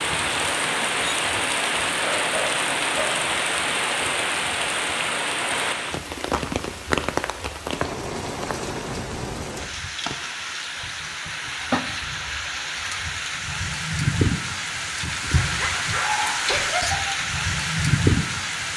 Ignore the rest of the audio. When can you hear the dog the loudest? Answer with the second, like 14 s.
16 s.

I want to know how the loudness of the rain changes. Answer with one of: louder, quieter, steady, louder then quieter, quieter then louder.
quieter then louder.